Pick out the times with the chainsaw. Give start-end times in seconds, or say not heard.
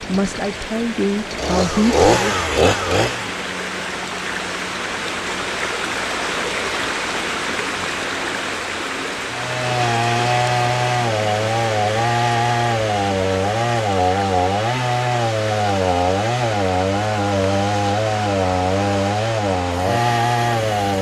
0.0-3.4, 9.3-20.9.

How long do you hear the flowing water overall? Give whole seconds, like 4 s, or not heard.
21 s.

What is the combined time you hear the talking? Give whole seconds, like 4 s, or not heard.
2 s.